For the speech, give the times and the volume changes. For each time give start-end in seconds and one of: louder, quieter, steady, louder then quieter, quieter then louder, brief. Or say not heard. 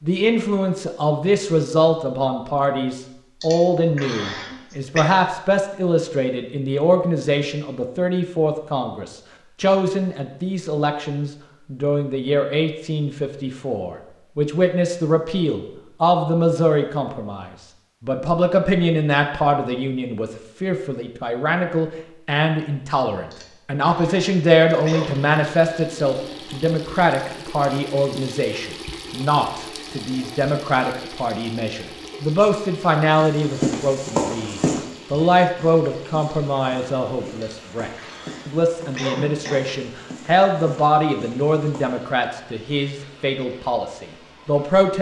0.0-44.9 steady.